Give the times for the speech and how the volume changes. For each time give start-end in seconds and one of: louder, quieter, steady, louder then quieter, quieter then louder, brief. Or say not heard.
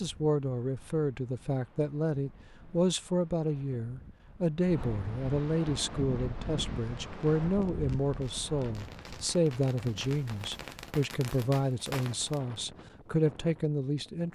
0.0-14.3 steady.